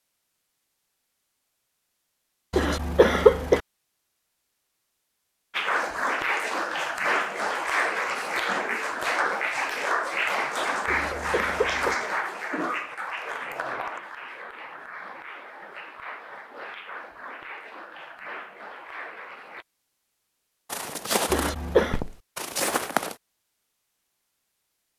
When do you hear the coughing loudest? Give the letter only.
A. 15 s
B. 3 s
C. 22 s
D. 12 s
B.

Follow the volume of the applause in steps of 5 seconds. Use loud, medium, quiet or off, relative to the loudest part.
off, loud, loud, quiet, off.